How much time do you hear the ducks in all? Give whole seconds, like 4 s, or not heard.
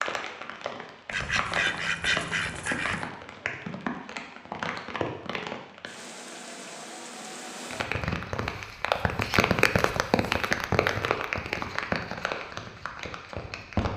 2 s.